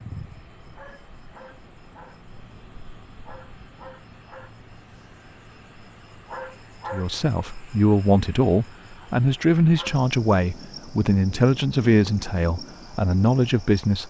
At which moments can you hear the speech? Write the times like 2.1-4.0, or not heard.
6.9-14.0.